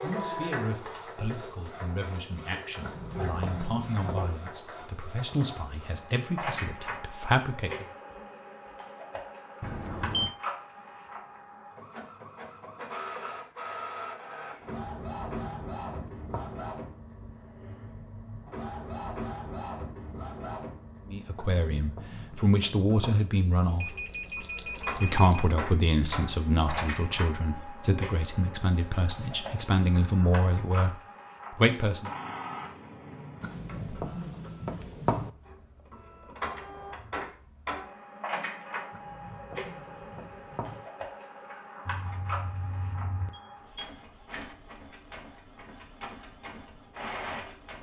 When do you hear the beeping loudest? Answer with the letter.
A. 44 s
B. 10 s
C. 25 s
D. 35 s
B.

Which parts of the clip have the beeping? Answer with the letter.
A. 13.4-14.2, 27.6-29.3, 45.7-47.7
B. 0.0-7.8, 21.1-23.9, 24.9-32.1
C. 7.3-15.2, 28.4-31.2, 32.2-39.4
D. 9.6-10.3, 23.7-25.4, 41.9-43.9
D.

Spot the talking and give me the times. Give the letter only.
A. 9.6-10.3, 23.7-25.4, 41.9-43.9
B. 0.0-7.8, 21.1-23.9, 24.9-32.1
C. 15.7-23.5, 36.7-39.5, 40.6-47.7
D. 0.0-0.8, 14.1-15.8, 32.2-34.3
B.